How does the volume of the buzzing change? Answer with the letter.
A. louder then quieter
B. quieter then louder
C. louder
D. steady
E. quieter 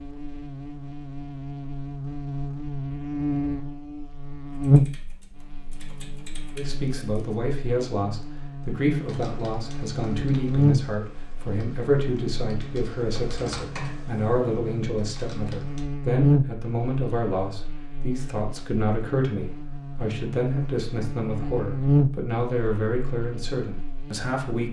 B.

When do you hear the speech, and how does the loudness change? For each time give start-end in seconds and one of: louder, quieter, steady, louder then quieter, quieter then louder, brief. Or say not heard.
6.5-24.6 steady.